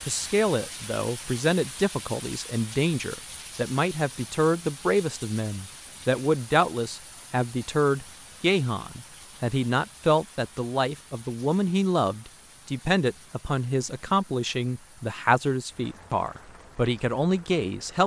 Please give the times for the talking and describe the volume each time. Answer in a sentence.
You can hear the talking from 0.1 to 18.0 s, at a steady volume.